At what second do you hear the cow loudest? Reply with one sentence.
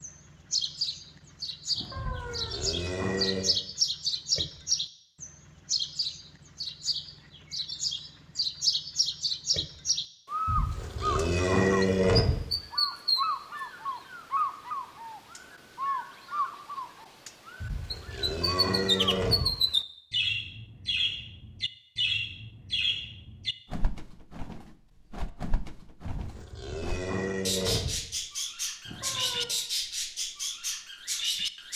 The volume of the cow peaks at 12 seconds.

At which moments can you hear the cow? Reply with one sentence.
The cow can be heard from 1.9 to 3.5 s, from 10.4 to 12.4 s, from 17.6 to 19.6 s and from 26.1 to 28.0 s.